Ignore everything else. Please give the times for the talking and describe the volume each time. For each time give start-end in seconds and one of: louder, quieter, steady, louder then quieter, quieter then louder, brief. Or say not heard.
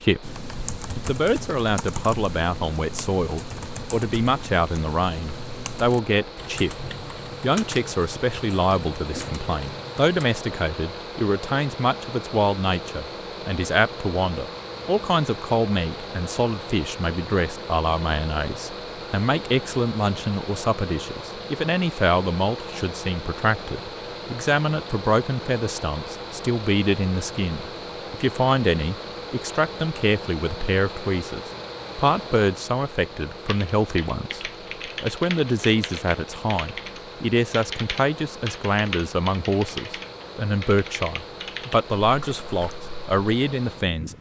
0.0-44.1 steady.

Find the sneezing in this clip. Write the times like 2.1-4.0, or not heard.
not heard.